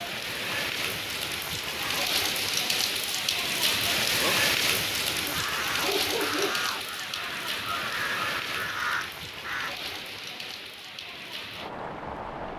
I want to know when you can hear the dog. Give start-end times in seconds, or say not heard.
5.0-6.7.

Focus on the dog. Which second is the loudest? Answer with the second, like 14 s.
6 s.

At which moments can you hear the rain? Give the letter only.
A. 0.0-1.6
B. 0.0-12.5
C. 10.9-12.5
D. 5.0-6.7
B.